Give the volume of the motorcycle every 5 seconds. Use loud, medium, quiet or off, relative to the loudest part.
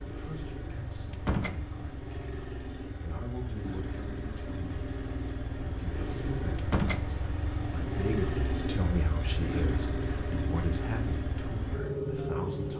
medium, loud, loud.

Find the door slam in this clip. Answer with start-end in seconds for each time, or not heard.
1.1-1.6, 6.5-7.0.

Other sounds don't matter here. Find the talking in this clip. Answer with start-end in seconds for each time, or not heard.
0.0-4.7, 5.7-12.7.